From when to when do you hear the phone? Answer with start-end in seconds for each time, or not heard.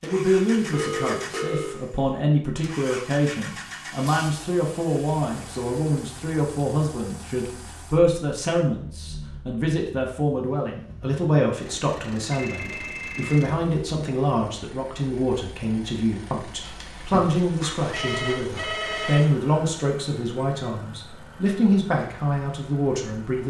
0.7-1.8, 12.3-13.6, 16.6-19.2.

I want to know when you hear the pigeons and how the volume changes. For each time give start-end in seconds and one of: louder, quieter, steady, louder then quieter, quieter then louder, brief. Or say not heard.
not heard.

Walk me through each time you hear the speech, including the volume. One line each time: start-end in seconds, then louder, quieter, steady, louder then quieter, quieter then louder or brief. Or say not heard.
0.0-23.4 steady.